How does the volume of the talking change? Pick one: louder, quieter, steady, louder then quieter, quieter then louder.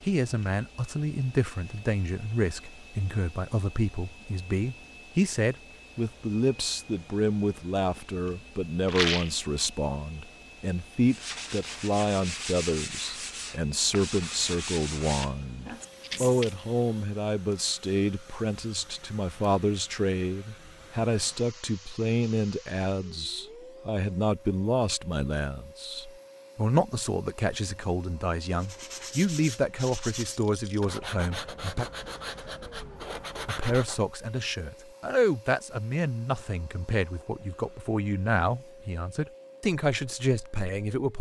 steady.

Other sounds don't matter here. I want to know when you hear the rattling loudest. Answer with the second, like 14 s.
9 s.